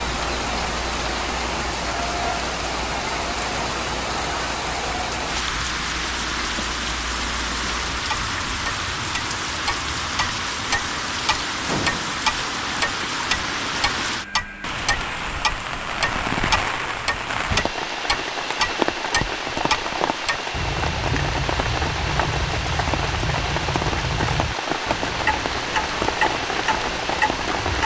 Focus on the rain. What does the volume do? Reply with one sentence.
The loudness of the rain stays about the same.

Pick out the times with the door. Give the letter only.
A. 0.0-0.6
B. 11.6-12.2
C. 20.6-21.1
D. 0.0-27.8
B.